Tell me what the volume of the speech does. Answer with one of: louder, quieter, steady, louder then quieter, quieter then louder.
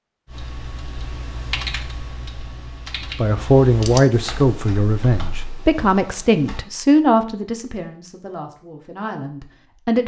quieter.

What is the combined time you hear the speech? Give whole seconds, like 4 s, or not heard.
7 s.